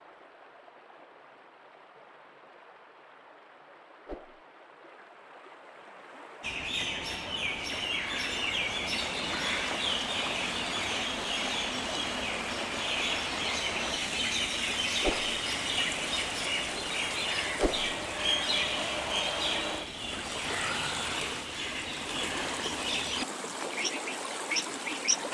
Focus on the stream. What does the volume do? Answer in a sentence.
The volume of the stream goes up.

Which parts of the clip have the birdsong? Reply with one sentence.
The birdsong can be heard from 6.4 to 25.2 s.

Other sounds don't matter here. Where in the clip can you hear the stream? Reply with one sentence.
You can hear the stream from 0.0 to 25.3 s.